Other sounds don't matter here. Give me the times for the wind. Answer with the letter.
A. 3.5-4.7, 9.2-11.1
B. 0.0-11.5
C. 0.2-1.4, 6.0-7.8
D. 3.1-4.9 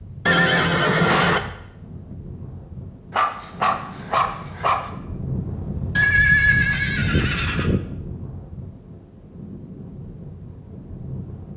B.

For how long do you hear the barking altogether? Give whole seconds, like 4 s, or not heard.
2 s.